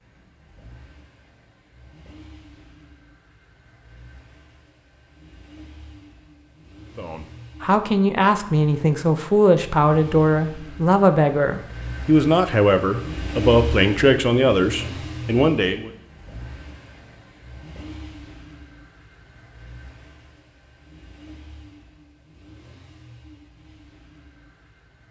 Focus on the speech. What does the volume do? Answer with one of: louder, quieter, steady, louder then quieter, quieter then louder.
steady.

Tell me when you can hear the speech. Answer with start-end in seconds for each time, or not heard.
7.0-15.9.